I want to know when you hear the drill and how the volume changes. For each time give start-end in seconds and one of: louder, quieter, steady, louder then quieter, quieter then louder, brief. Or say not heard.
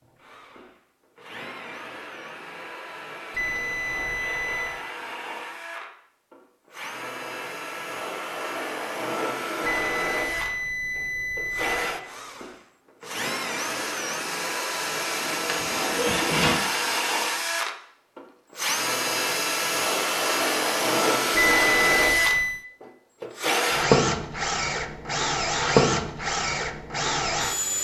0.1-27.7 louder.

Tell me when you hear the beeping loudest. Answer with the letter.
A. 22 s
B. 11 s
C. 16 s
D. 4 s
A.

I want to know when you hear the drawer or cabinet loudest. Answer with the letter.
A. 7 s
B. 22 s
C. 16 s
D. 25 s
C.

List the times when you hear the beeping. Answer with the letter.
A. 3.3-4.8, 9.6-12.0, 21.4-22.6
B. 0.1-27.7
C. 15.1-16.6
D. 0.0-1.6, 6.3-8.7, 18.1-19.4
A.